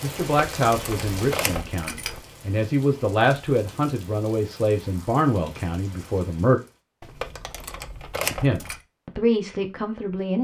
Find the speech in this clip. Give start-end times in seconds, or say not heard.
0.0-6.6, 8.4-10.3.